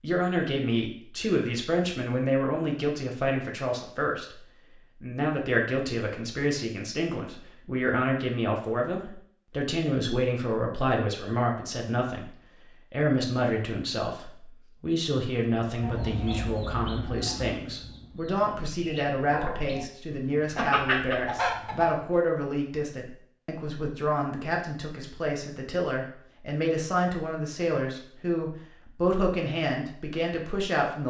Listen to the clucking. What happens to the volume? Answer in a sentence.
The loudness of the clucking goes down, then up.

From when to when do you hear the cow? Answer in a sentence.
You can't hear the cow here.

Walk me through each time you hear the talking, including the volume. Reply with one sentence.
You can hear the talking from 0.0 to 31.0 s, at a steady volume.